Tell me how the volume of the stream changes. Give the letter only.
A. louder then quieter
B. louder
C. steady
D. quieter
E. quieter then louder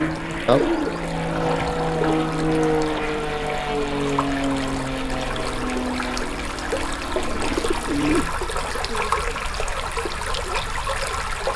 B.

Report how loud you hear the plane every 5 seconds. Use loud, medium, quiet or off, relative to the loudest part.
loud, medium, off.